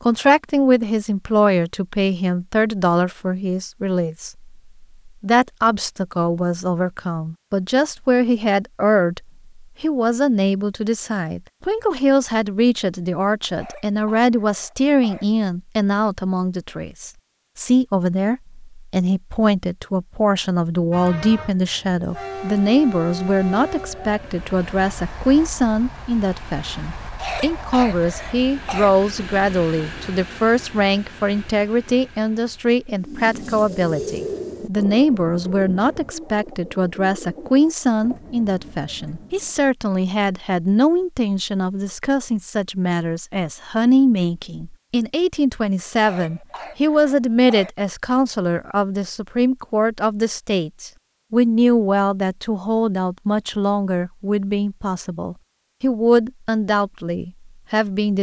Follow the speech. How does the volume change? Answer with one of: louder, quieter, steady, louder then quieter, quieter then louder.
steady.